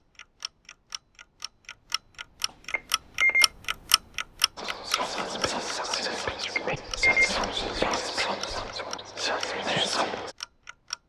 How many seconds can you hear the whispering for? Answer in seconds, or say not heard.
6 s.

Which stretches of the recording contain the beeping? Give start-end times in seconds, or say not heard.
2.7-3.5, 6.3-7.8.